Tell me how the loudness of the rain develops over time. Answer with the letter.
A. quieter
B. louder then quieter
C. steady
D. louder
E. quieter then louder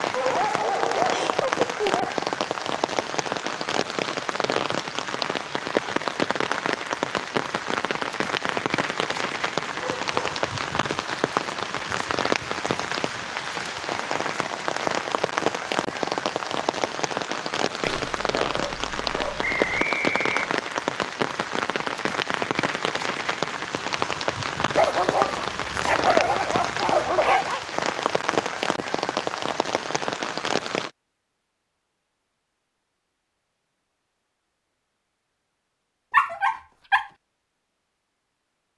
C.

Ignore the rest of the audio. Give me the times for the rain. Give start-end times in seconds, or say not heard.
0.0-30.9.